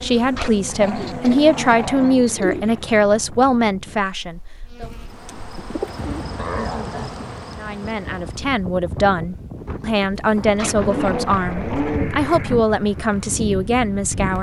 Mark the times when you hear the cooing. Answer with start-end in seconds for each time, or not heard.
0.8-2.9, 4.8-6.2, 10.8-12.7.